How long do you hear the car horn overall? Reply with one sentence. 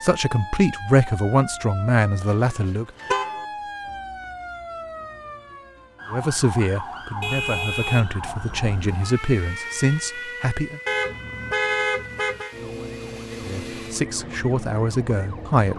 You can hear the car horn for 5 seconds altogether.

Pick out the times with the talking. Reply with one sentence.
You can hear the talking from 0.0 to 2.9 s, from 6.1 to 10.8 s and from 13.4 to 15.7 s.